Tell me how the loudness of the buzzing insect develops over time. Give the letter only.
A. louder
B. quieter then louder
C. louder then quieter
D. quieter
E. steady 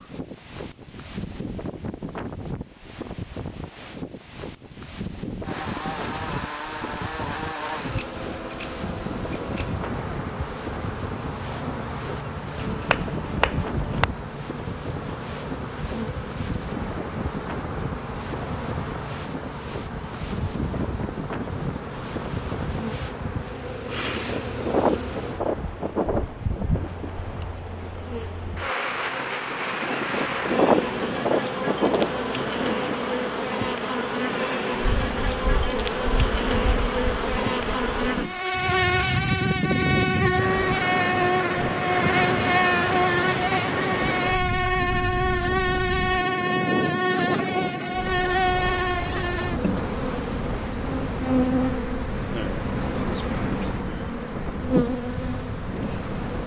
A.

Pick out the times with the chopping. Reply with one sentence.
You can hear the chopping from 12.6 to 14.1 s.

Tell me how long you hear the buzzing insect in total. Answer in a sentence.
The buzzing insect can be heard for 51 seconds in total.